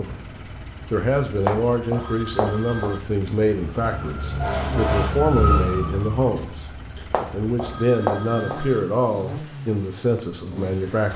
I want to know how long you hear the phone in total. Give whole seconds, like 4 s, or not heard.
3 s.